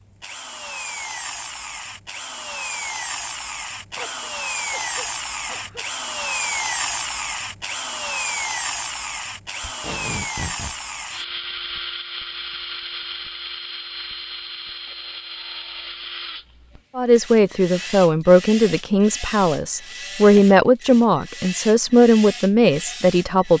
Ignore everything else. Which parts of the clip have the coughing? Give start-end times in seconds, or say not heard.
4.0-5.8.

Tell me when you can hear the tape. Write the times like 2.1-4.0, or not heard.
9.6-10.8.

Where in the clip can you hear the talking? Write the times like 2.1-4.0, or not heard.
16.9-23.5.